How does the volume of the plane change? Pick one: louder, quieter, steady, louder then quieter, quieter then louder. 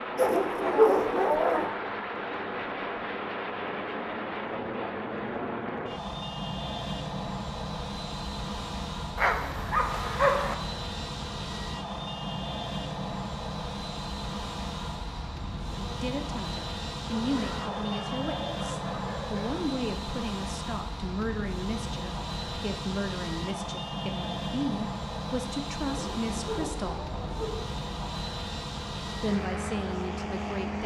steady.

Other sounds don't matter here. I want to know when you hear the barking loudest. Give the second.
1 s.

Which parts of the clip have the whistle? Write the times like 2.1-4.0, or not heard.
not heard.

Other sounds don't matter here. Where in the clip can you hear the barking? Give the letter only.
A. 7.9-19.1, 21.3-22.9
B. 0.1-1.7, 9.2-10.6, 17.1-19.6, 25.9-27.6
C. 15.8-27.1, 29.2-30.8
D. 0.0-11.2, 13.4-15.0
B.